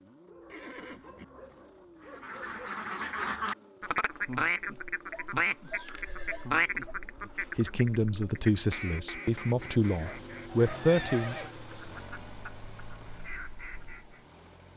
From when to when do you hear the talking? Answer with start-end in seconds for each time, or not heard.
7.2-11.4.